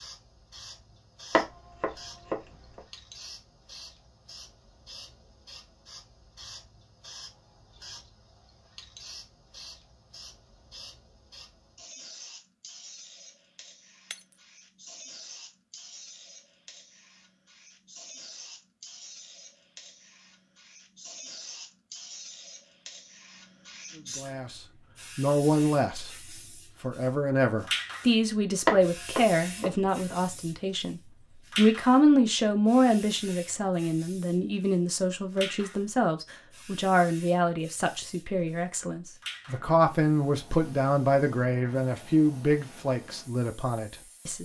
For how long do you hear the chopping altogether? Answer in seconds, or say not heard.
3 s.